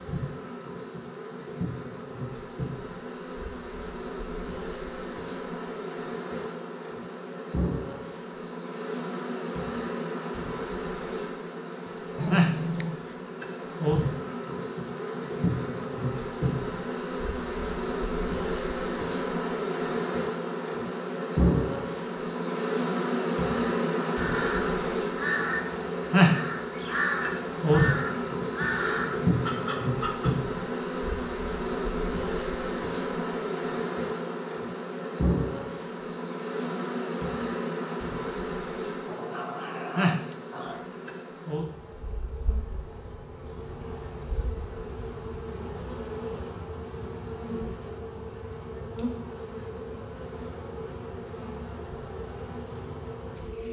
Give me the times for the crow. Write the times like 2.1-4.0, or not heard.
24.1-30.3.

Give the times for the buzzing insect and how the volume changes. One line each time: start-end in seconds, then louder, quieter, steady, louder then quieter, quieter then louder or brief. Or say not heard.
0.0-53.6 louder then quieter.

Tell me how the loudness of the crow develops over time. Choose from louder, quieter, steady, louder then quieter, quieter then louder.
quieter then louder.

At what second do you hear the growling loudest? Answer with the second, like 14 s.
12 s.